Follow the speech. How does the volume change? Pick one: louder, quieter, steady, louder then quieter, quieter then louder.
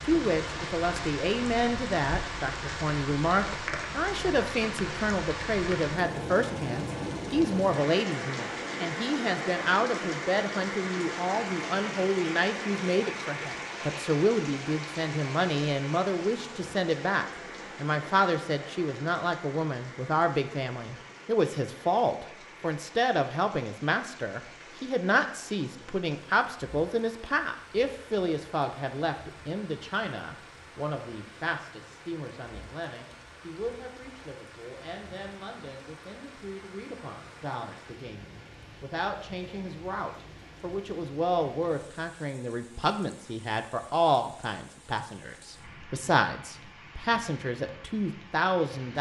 quieter then louder.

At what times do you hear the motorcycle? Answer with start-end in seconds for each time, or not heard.
not heard.